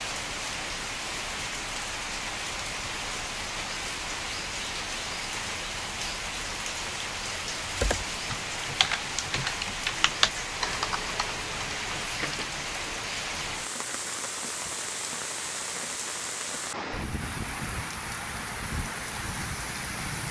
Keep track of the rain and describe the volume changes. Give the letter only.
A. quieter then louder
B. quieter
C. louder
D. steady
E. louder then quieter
D.